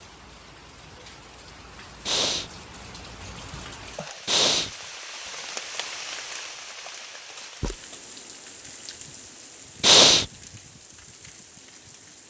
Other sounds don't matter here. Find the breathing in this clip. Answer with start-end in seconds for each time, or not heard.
2.0-2.5, 4.2-4.7, 9.8-10.2.